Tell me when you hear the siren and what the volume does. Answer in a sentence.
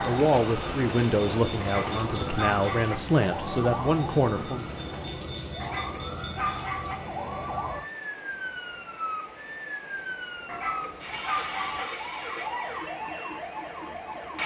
You can hear the siren from 0.0 to 14.4 s, at a steady volume.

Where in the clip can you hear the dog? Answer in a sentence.
The dog can be heard from 1.6 to 3.0 s, from 5.6 to 7.0 s and from 10.4 to 11.8 s.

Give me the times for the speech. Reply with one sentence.
The speech can be heard from 0.1 to 4.7 s.